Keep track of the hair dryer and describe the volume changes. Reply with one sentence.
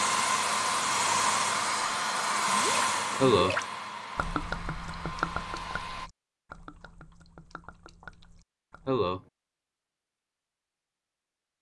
The volume of the hair dryer goes down.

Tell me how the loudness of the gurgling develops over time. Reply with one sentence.
The volume of the gurgling goes down.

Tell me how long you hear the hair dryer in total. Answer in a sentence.
The hair dryer can be heard for 6 seconds in total.